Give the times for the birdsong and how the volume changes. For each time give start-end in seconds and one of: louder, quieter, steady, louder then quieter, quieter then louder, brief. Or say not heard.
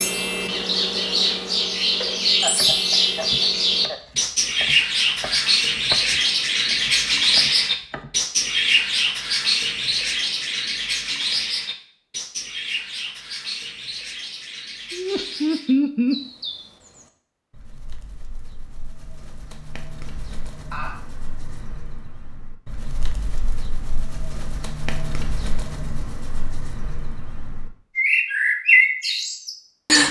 0.0-30.0 quieter then louder.